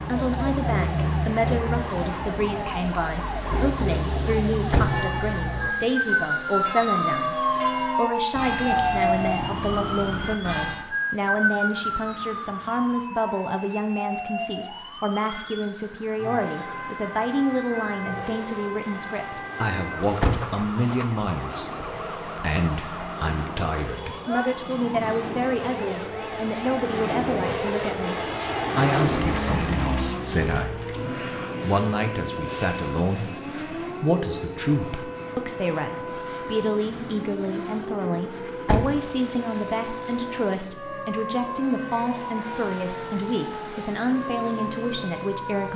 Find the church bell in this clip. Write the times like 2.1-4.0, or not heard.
4.7-10.9.